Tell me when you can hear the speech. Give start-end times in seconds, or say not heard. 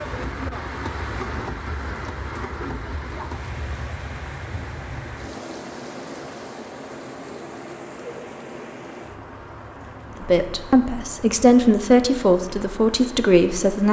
10.2-13.8.